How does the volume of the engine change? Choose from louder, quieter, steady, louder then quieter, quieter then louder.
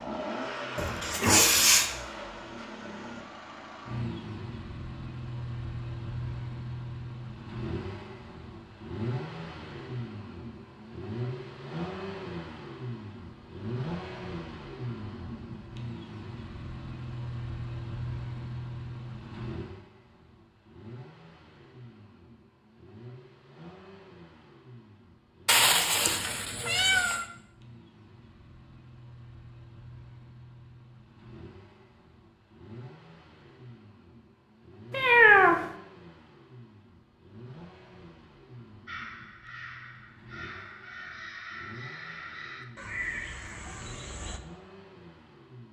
quieter.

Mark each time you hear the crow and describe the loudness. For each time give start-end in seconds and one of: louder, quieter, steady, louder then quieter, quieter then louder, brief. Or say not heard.
38.9-44.4 louder.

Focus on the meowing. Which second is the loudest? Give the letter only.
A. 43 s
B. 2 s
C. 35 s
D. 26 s
C.